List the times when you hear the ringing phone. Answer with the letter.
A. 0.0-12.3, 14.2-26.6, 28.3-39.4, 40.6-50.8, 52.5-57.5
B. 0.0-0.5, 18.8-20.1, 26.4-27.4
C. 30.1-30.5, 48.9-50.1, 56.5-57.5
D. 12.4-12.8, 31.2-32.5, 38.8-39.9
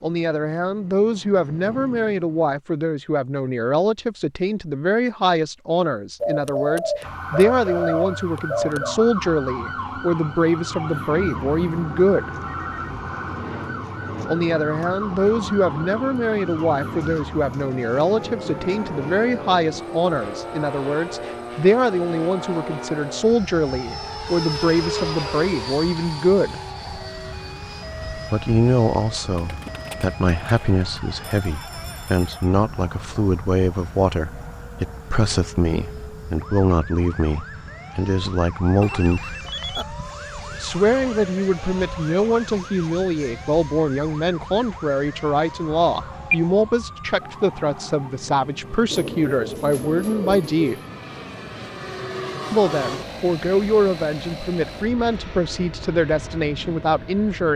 D.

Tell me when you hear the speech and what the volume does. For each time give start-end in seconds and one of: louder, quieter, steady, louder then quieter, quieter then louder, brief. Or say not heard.
0.0-12.3 steady
14.2-26.6 steady
28.3-39.4 steady
40.6-50.8 steady
52.5-57.5 steady.